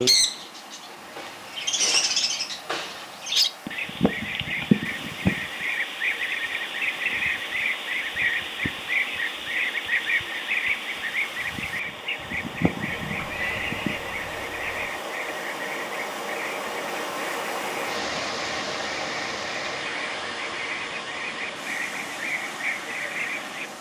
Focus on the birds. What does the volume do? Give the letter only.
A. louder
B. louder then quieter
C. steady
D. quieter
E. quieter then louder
D.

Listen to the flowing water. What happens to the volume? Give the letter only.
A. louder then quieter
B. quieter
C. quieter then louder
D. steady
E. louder
E.